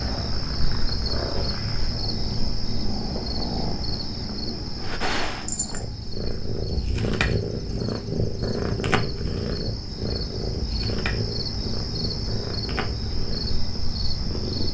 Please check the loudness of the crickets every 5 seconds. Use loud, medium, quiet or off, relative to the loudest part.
loud, medium, loud.